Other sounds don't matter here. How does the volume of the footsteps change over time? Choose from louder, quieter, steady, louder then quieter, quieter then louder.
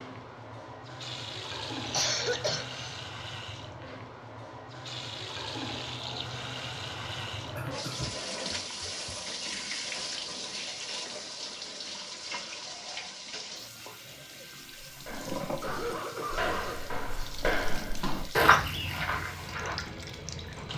louder then quieter.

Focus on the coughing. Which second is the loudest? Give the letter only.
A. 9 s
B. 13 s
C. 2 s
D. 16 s
C.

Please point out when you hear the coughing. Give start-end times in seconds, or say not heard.
1.9-3.0, 7.5-9.2, 15.0-16.8.